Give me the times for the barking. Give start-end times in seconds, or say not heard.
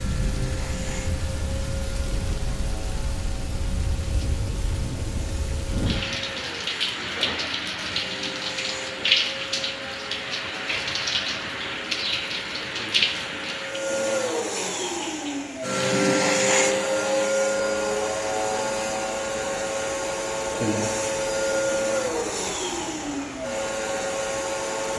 not heard.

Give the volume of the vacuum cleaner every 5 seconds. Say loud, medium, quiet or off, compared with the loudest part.
quiet, quiet, medium, loud, loud.